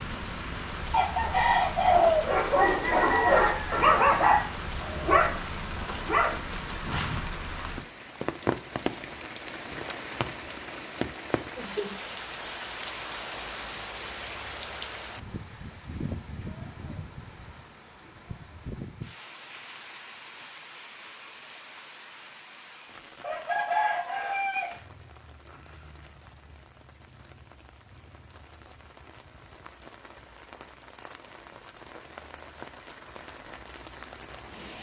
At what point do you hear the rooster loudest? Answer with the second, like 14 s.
2 s.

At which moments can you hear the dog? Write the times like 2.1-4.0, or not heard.
1.8-7.2.